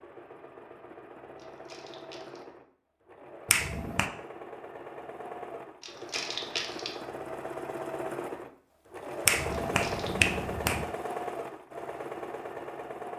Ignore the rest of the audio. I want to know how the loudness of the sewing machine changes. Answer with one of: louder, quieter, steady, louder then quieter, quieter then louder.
louder.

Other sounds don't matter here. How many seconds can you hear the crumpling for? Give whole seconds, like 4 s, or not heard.
3 s.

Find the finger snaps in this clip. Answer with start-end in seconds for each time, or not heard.
3.5-4.1, 9.2-10.8.